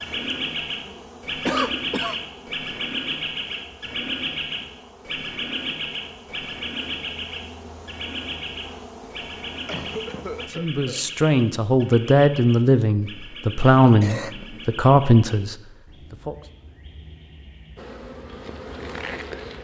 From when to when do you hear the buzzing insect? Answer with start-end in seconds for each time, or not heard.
0.0-10.5, 17.8-19.5.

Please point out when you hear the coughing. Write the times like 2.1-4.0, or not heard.
1.4-2.1, 9.7-11.1, 13.6-14.8.